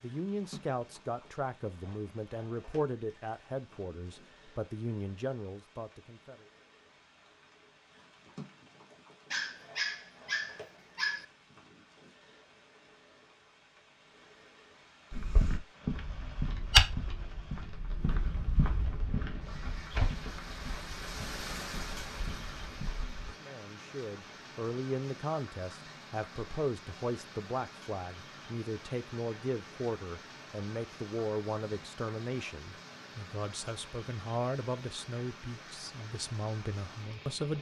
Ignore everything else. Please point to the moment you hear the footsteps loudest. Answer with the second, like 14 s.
17 s.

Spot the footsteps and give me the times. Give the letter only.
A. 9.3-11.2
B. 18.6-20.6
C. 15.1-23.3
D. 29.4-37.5
C.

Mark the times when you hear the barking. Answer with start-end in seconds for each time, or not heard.
9.3-11.2.